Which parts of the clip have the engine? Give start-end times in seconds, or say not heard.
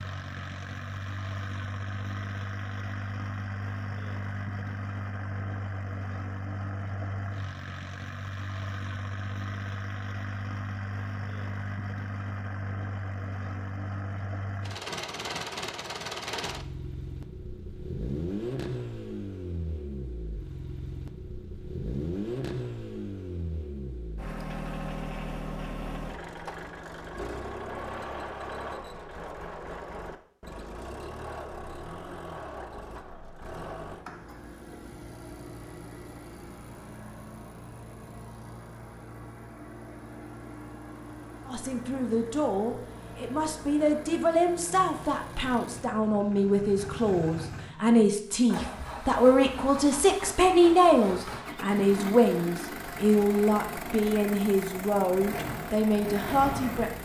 0.0-57.0.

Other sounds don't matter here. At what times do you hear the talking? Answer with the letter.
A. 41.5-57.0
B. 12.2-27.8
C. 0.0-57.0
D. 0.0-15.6
A.